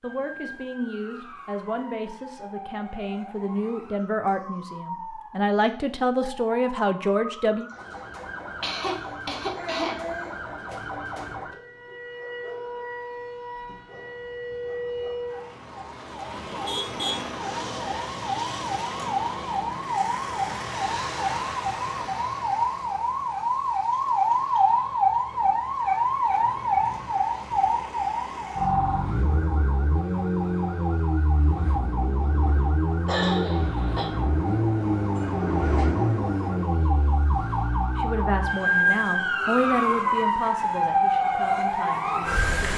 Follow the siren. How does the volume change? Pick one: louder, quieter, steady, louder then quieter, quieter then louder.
louder.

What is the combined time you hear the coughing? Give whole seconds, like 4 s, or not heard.
3 s.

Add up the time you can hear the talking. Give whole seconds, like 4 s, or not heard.
12 s.